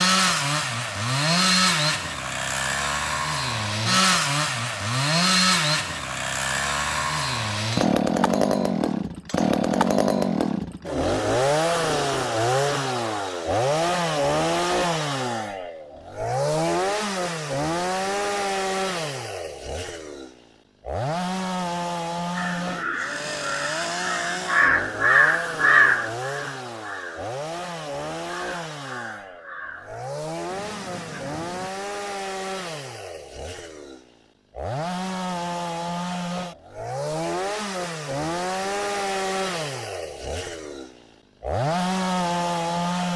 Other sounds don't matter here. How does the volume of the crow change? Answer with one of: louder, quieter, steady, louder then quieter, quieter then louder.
louder then quieter.